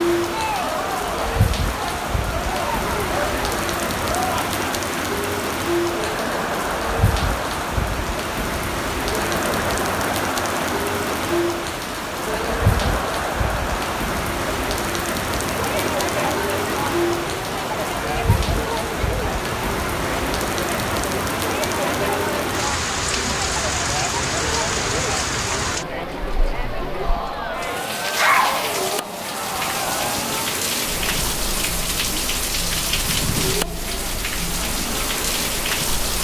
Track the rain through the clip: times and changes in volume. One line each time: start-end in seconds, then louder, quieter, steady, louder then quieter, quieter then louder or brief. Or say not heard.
0.0-36.2 steady.